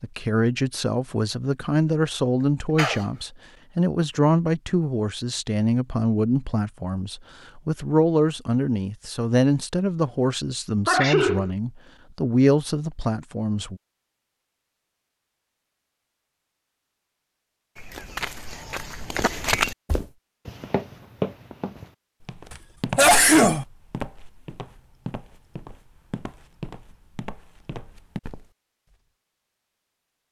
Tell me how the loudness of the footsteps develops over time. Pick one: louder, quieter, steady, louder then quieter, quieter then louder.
quieter.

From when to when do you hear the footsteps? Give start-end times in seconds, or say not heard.
17.8-28.5.